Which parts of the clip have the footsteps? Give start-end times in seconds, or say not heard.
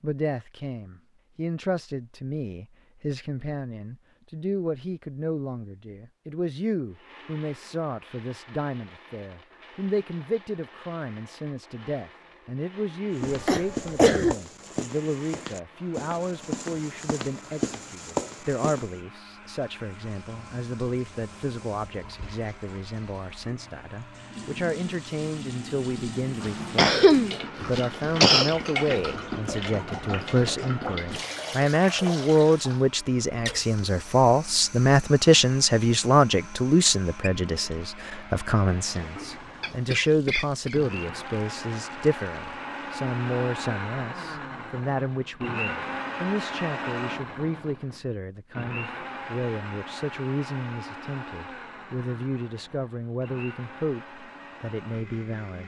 13.2-18.9.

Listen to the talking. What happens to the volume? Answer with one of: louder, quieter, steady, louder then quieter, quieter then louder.
louder then quieter.